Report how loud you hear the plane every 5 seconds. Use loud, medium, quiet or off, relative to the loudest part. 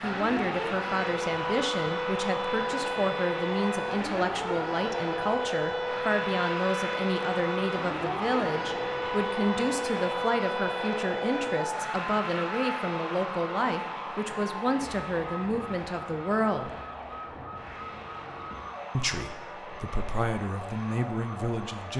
loud, loud, loud, medium, medium.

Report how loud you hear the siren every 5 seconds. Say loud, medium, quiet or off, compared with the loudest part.
loud, loud, loud, medium, medium.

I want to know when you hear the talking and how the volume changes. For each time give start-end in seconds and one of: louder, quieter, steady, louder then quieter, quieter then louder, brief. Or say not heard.
0.0-16.7 steady
18.9-21.9 brief.